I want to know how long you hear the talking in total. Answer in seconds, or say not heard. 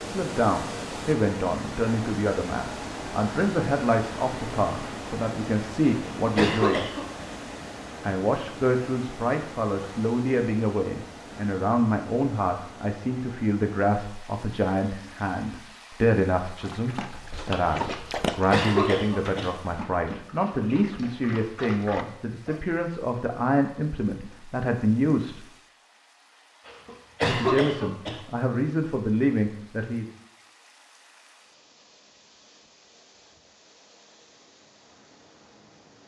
27 s.